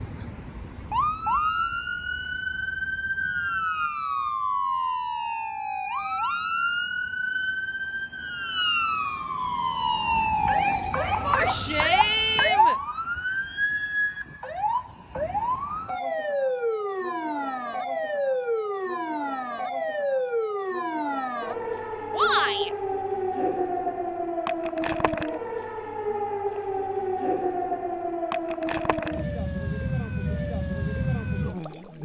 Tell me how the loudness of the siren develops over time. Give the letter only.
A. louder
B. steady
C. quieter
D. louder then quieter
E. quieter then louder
B.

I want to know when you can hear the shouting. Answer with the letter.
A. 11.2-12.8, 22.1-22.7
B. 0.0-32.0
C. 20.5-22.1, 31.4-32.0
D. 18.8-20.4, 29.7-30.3
A.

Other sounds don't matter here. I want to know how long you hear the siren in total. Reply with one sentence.
You can hear the siren for 32 seconds altogether.